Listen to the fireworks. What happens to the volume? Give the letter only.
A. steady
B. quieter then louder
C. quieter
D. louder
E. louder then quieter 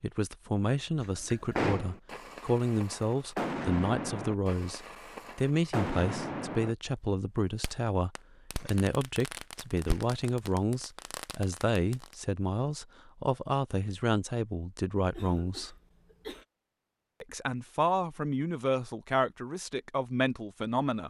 C.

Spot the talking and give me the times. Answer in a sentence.
You can hear the talking from 0.0 to 15.8 s and from 17.2 to 21.0 s.